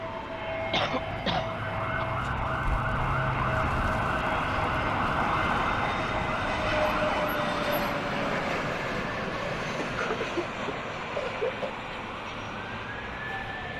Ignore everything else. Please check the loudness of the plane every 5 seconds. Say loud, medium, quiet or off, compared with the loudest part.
medium, loud, medium.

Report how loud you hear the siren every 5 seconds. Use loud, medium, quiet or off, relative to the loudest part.
loud, loud, medium.